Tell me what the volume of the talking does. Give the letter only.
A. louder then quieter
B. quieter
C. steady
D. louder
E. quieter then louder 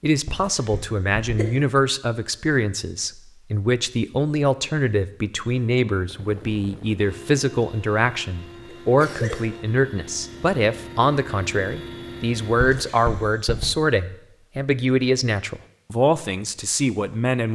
C.